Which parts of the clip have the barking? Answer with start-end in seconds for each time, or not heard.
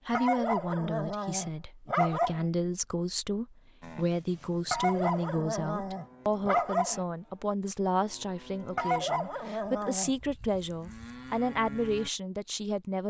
0.1-2.5, 4.7-7.0, 8.8-10.1.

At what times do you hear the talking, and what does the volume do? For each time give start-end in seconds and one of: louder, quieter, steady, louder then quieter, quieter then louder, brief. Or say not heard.
0.1-13.0 steady.